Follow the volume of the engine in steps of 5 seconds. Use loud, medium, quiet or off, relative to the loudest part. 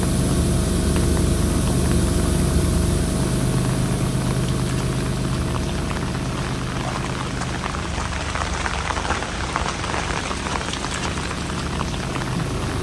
loud, medium, medium.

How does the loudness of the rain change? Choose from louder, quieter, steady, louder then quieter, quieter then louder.
louder.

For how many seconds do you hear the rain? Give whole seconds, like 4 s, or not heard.
13 s.